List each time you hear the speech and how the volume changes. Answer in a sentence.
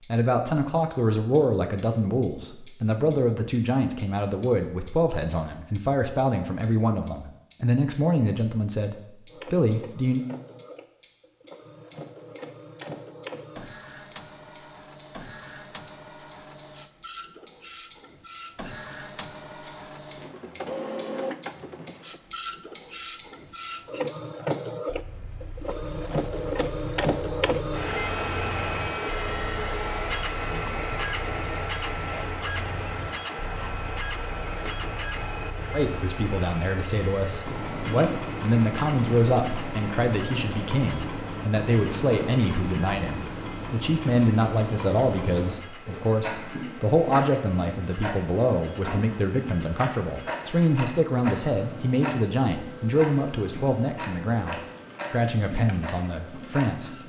You can hear the speech from 0.1 to 10.2 s, at a steady volume; and from 35.7 to 57.0 s, at a steady volume.